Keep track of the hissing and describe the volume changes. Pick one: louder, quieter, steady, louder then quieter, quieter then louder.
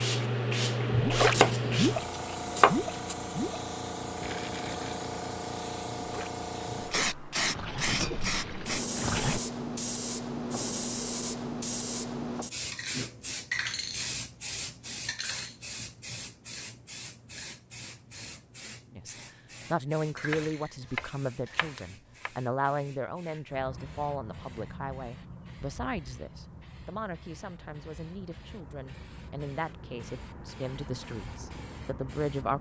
quieter.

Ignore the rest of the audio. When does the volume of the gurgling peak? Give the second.
1 s.